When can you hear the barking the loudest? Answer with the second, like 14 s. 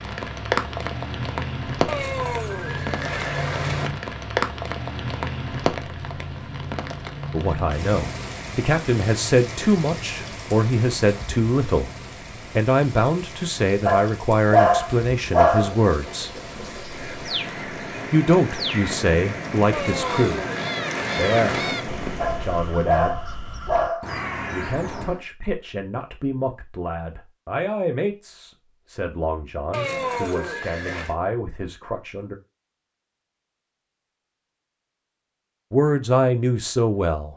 15 s.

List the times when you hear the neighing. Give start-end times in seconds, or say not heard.
1.9-3.9, 19.7-21.8, 29.7-31.1.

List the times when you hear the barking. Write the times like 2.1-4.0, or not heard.
13.8-15.8, 22.2-24.1.